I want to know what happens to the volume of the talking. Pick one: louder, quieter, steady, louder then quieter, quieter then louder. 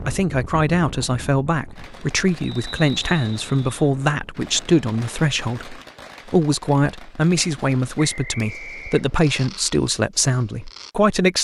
steady.